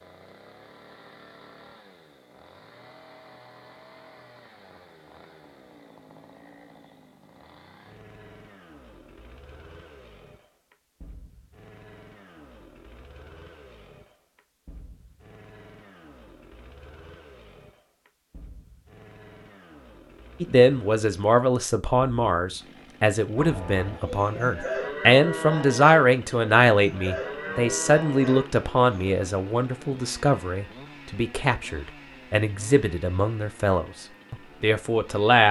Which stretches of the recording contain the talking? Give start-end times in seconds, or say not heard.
20.4-35.4.